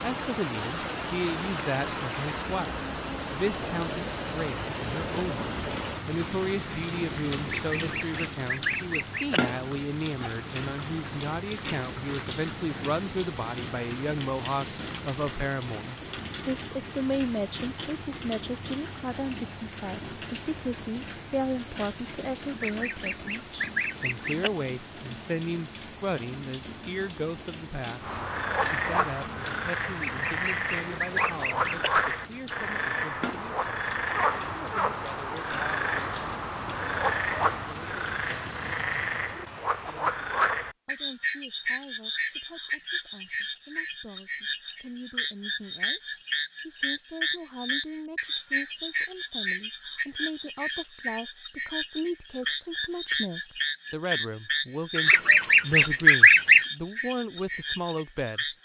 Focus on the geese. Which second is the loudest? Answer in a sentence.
The loudest moment of the geese is at 56 seconds.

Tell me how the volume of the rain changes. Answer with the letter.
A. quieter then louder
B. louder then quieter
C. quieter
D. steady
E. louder
C.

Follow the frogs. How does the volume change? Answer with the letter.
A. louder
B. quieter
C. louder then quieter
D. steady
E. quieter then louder
D.